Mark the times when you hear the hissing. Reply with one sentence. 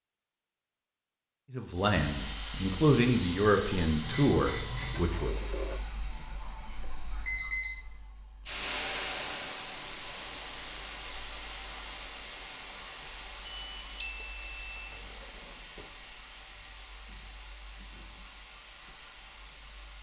You can hear the hissing from 1.8 to 19.9 s.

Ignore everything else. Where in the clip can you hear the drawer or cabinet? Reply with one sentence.
You can hear the drawer or cabinet from 4.9 to 5.8 s and from 14.2 to 15.9 s.